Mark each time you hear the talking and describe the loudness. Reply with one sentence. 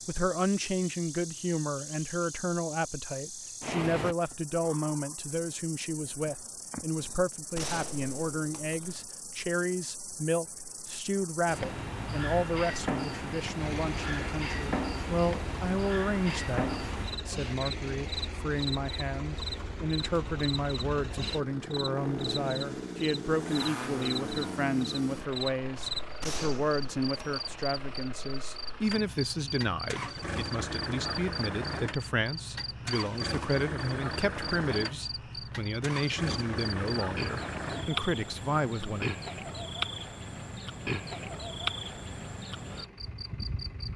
The talking can be heard from 0.1 to 39.1 s, at a steady volume.